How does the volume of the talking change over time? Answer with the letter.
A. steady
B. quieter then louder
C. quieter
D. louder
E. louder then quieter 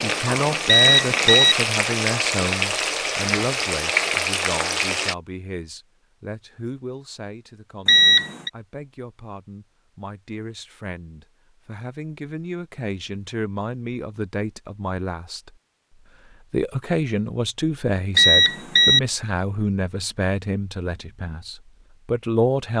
B.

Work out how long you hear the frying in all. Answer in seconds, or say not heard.
5 s.